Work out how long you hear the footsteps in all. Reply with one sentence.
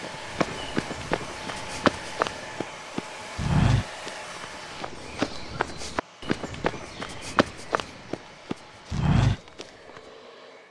The footsteps can be heard for 10 seconds in total.